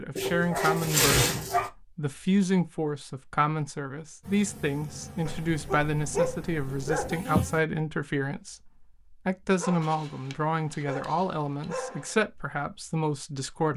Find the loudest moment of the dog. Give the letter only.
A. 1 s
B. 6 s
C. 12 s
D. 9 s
A.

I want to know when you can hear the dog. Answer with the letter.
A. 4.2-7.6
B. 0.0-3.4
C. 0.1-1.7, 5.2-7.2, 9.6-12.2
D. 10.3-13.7
C.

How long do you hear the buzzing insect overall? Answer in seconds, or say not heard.
3 s.